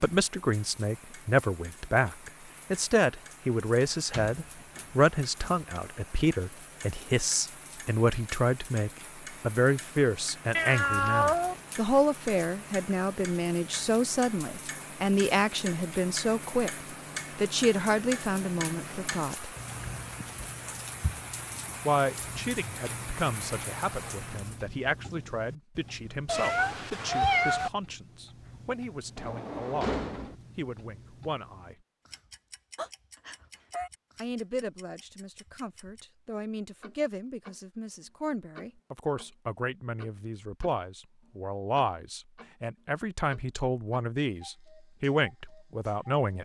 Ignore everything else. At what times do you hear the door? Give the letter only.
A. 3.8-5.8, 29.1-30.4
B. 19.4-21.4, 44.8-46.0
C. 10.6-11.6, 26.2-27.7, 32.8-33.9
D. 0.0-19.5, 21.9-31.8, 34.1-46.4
A.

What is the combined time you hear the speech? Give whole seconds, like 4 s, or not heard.
42 s.